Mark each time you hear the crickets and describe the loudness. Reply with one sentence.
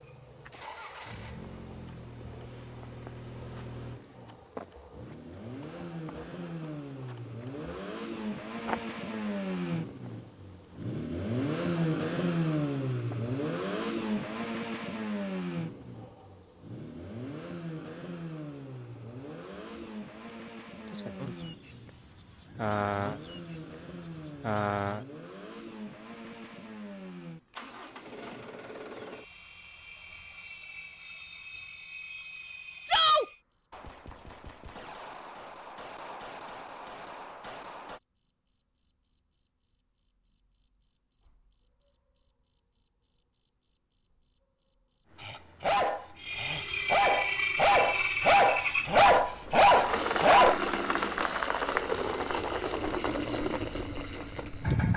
You can hear the crickets from 0.0 to 54.9 s, at a steady volume.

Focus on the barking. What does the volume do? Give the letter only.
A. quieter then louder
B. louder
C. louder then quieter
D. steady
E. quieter
B.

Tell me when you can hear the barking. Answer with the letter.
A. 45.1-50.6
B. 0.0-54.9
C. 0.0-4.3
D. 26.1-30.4
A.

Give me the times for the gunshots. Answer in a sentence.
The gunshots can be heard from 33.7 to 38.0 s.